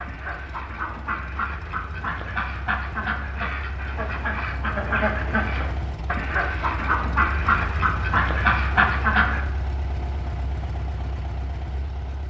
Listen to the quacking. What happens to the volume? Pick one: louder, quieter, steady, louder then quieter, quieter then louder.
louder.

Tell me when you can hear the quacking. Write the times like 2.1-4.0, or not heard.
0.0-9.4.